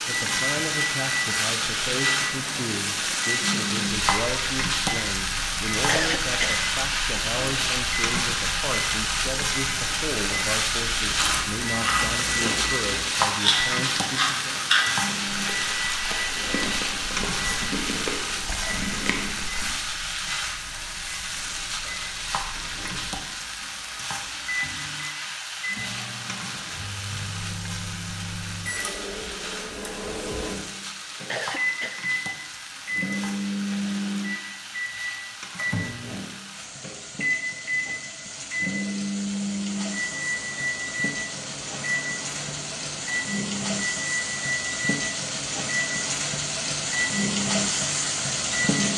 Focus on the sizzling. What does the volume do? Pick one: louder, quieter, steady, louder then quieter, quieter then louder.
quieter then louder.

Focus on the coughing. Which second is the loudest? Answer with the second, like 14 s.
6 s.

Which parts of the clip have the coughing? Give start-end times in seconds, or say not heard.
5.8-6.6, 31.3-32.0.